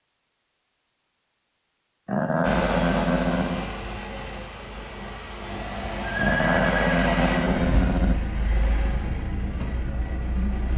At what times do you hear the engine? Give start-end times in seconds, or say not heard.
2.4-10.7.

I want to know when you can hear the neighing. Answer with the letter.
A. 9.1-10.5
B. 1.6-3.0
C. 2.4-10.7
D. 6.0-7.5
D.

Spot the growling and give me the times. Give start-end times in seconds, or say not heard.
2.0-3.7, 6.2-8.2.